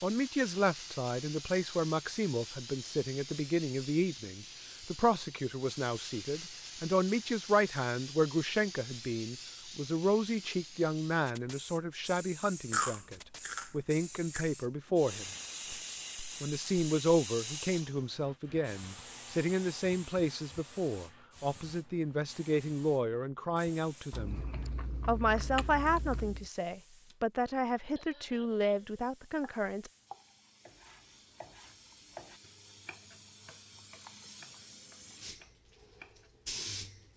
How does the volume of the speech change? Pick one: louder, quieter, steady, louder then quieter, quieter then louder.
steady.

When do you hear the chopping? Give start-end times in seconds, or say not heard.
29.4-36.3.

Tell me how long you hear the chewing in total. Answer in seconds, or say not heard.
4 s.